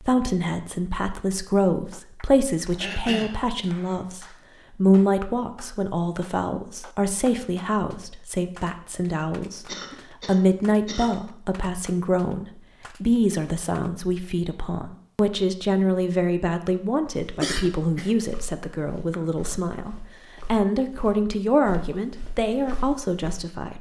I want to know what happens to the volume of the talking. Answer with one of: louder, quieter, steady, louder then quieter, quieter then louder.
steady.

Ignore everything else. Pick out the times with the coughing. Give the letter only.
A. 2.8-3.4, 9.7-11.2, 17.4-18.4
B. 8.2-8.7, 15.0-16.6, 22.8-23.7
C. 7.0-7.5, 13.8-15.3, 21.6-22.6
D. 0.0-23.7
A.